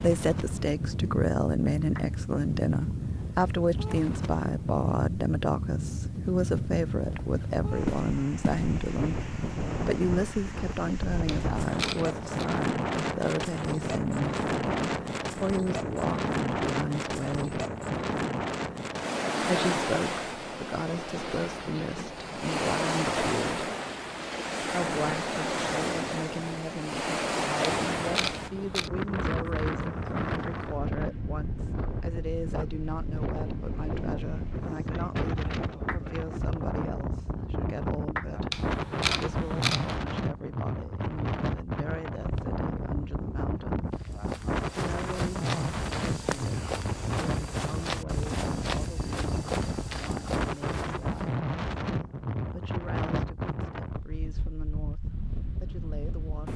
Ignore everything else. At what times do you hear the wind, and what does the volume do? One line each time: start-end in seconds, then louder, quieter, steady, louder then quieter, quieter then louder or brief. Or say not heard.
0.0-56.5 steady.